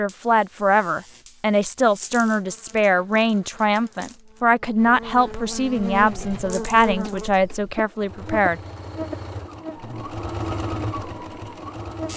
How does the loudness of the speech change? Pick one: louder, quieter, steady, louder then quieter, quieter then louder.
steady.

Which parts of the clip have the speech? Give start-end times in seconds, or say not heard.
0.0-8.6.